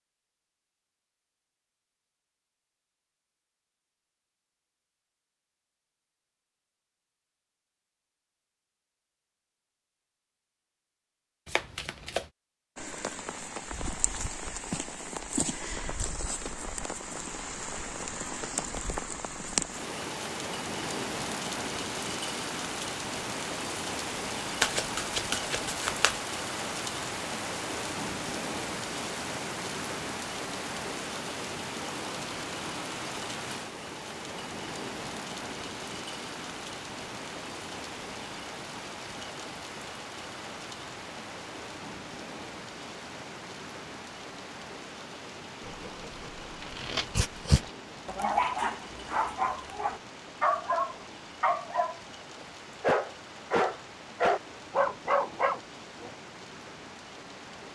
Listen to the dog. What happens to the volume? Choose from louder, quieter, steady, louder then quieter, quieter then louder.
louder.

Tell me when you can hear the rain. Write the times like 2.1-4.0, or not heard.
12.8-57.6.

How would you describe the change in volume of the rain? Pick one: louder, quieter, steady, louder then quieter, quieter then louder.
quieter.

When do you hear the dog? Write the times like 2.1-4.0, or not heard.
45.6-56.1.